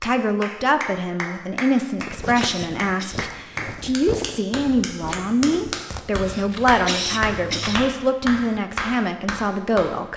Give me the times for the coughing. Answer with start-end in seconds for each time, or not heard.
1.7-3.3, 6.2-7.9.